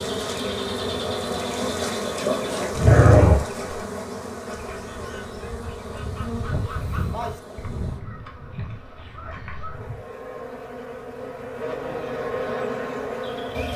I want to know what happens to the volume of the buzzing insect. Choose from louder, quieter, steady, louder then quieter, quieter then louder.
quieter then louder.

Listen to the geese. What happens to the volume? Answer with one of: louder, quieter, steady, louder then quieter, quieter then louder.
louder then quieter.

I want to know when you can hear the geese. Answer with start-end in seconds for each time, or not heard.
4.5-10.1.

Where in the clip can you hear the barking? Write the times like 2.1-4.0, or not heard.
2.8-3.8.